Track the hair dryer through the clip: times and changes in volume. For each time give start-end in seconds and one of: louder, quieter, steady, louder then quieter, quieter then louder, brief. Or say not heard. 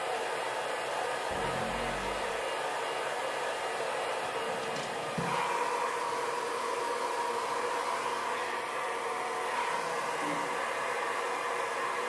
0.0-12.0 steady.